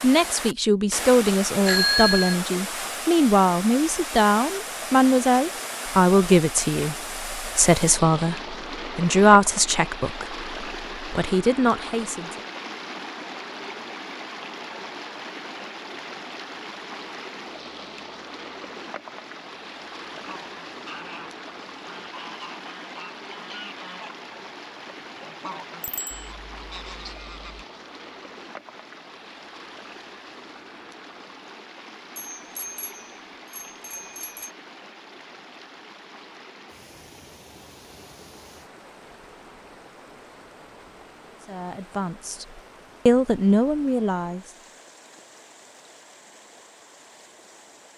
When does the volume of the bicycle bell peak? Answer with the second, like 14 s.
2 s.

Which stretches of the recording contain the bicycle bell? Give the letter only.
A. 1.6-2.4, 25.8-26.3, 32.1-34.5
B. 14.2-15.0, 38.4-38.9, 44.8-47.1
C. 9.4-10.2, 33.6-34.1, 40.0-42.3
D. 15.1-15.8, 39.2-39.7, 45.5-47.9
A.